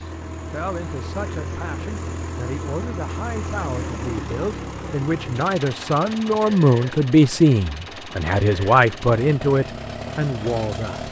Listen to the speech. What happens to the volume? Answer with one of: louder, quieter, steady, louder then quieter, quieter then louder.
louder.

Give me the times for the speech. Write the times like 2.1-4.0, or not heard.
0.0-11.0.